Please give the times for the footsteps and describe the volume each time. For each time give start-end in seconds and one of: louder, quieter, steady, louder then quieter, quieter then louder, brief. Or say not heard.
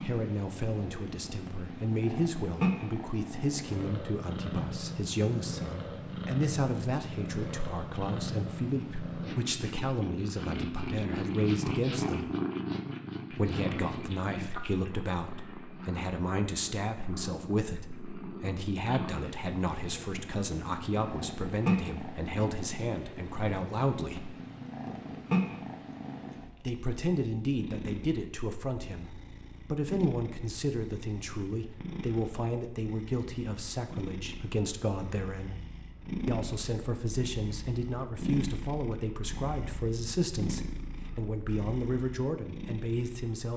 not heard.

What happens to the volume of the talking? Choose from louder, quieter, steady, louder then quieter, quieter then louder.
steady.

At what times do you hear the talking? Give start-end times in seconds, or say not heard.
0.0-12.3, 13.3-24.4, 26.6-35.5, 36.2-43.5.